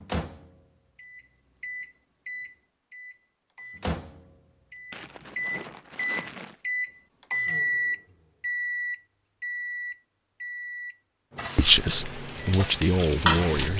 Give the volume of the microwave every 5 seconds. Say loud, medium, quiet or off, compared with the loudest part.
medium, loud, medium.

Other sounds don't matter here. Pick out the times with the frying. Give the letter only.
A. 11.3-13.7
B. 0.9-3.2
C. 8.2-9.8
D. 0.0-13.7
A.